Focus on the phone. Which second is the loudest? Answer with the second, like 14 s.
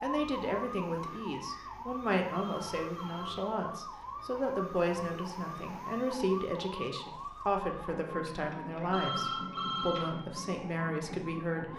9 s.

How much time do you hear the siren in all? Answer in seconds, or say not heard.
12 s.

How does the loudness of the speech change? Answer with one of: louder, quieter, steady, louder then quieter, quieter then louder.
steady.